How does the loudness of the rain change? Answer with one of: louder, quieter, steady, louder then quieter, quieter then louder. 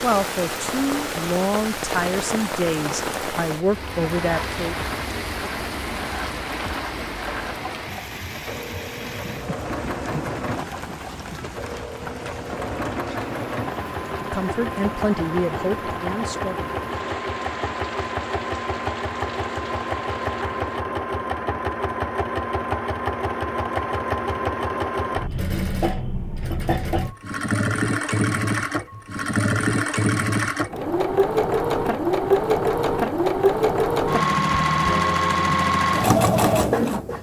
quieter.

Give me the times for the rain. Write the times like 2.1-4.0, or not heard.
0.0-20.9.